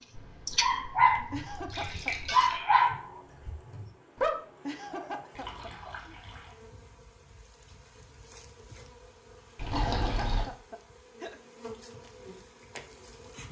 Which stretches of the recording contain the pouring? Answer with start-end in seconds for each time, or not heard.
0.1-2.6, 5.3-6.5, 9.6-10.5.